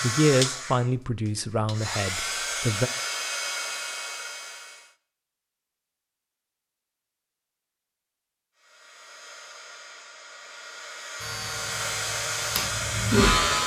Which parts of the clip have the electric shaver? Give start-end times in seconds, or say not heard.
11.2-13.6.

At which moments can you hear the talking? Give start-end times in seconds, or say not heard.
0.0-2.9.